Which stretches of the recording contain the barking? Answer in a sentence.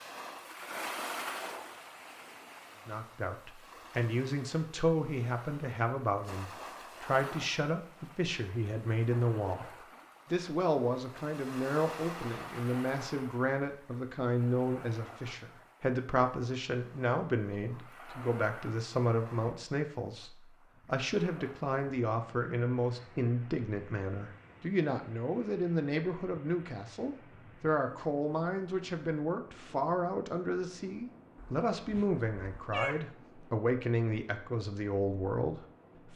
You can hear the barking from 31.4 to 33.0 s.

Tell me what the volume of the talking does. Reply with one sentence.
The loudness of the talking stays about the same.